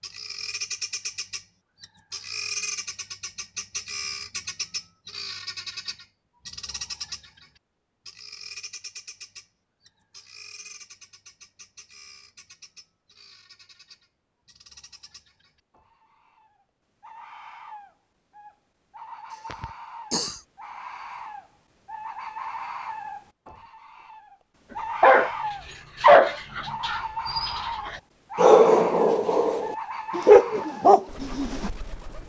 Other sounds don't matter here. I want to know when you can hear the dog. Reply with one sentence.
The dog can be heard from 25.0 to 31.7 s.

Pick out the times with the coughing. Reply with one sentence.
The coughing can be heard from 19.3 to 20.4 s.